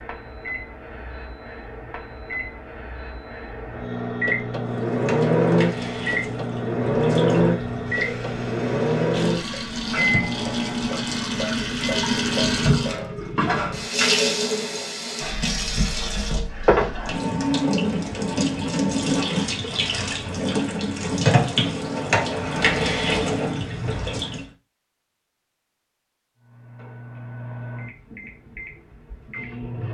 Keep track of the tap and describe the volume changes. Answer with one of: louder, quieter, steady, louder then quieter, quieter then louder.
louder.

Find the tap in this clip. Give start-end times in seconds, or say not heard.
4.5-24.5.